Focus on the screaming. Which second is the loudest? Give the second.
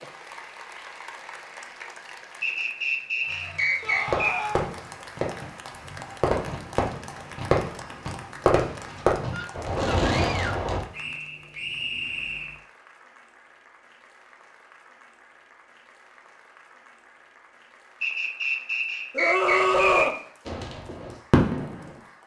20 s.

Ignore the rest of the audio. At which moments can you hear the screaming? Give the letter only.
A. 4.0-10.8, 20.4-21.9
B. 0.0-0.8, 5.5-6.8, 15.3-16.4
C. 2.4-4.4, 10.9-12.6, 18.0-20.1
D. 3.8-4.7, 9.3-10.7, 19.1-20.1
D.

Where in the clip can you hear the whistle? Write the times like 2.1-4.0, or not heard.
2.4-4.4, 10.9-12.6, 18.0-20.1.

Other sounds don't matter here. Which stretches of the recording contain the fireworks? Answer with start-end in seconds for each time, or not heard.
4.0-10.8, 20.4-21.9.